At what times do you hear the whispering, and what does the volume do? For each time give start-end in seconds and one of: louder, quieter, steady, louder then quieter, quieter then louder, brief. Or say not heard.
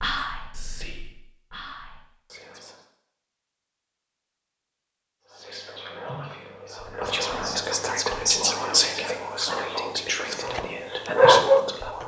0.0-2.8 brief
5.2-12.0 louder then quieter.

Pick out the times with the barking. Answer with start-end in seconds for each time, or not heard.
10.4-12.0.